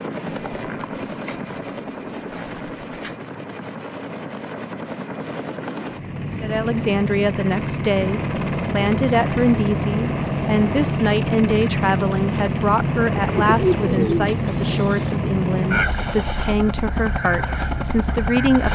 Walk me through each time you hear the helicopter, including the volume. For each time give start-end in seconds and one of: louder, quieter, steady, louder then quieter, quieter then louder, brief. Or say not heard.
0.0-18.7 louder.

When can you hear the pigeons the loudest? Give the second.
14 s.